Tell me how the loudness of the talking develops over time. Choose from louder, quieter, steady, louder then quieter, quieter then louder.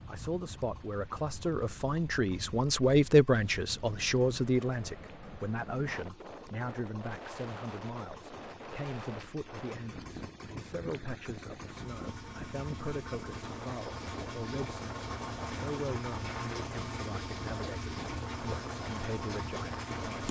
quieter.